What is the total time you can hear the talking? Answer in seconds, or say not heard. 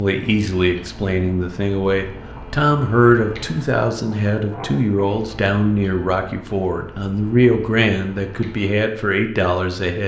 10 s.